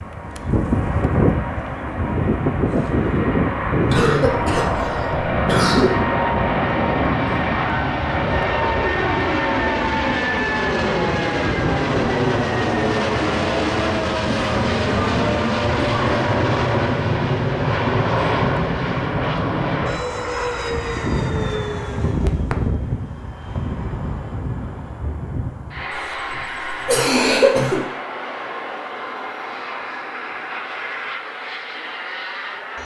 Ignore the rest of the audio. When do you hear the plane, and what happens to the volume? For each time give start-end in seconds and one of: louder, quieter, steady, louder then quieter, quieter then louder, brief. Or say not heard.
0.0-32.8 quieter.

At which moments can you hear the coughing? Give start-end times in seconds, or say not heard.
3.9-5.9, 14.2-16.2, 25.9-27.9.